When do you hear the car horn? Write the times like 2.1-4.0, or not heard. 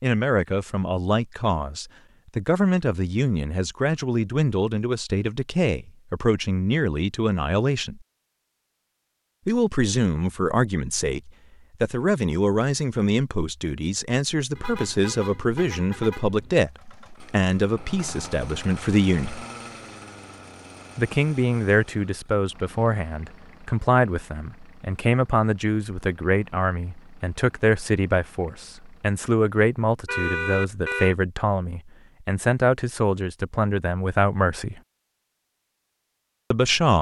14.6-16.6, 30.1-31.1.